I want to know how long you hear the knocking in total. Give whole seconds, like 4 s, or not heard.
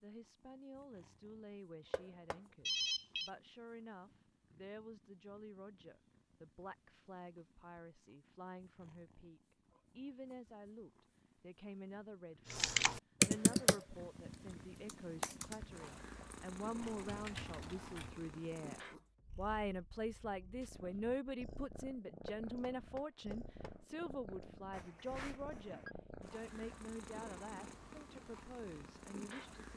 2 s.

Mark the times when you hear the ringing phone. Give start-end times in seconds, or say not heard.
2.6-3.3, 24.7-25.9.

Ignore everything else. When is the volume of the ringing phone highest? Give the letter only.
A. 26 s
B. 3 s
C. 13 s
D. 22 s
B.